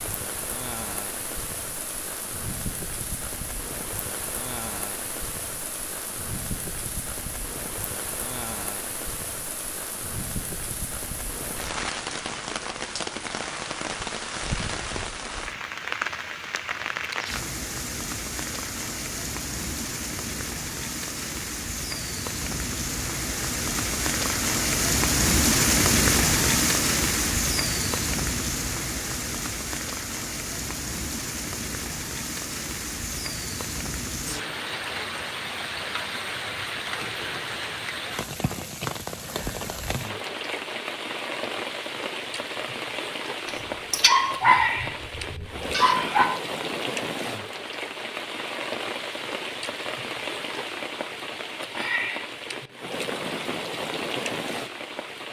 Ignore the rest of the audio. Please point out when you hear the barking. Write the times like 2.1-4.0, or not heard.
43.5-46.3.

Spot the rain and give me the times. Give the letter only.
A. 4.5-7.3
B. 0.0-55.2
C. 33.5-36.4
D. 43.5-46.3
B.